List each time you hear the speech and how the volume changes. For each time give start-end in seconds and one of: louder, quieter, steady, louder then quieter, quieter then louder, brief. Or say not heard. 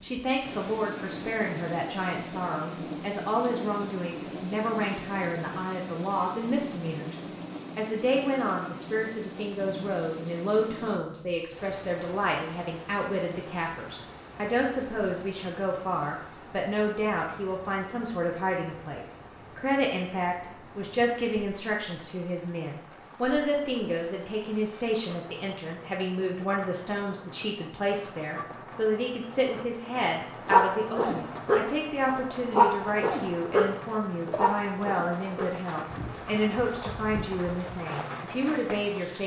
0.0-39.2 steady.